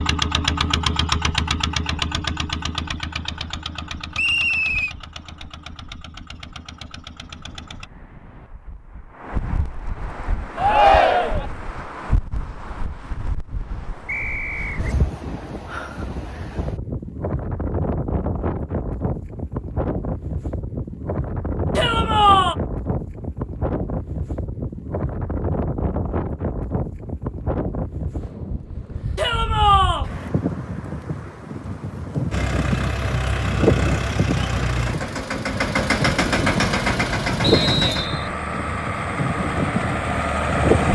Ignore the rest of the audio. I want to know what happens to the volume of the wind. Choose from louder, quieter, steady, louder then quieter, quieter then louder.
louder.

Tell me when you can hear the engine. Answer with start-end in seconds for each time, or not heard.
0.0-7.9, 32.3-40.9.